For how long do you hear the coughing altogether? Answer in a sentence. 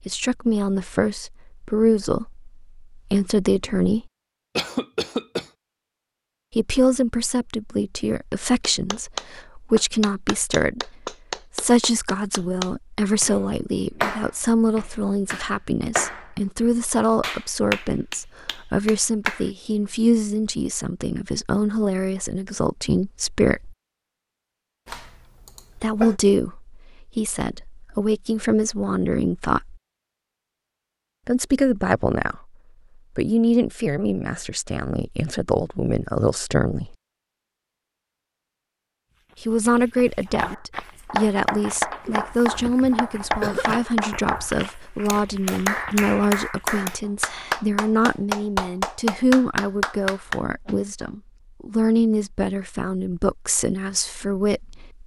The coughing can be heard for 4 seconds in total.